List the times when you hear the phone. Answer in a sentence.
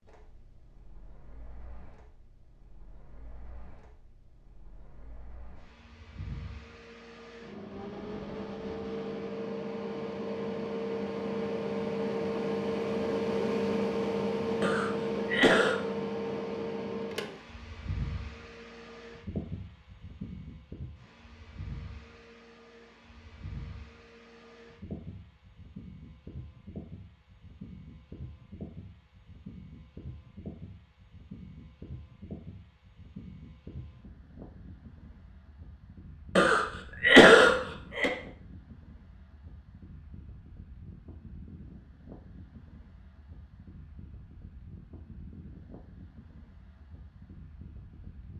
You can't hear the phone here.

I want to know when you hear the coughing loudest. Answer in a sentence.
The loudest moment of the coughing is at 37 seconds.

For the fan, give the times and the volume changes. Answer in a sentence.
You can hear the fan from 0.0 to 48.3 s, getting louder then quieter.